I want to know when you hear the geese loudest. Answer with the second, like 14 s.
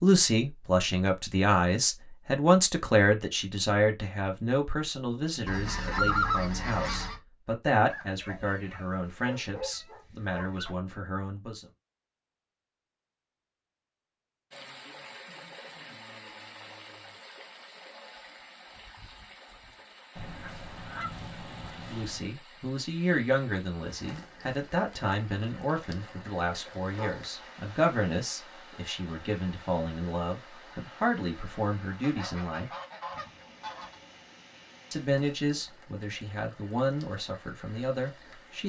6 s.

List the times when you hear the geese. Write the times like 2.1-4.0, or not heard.
5.5-7.2, 20.1-22.3, 32.0-34.0.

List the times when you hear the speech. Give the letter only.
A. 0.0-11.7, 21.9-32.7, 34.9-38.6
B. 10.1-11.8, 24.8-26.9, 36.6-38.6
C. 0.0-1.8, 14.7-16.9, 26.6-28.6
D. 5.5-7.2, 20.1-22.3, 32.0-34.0
A.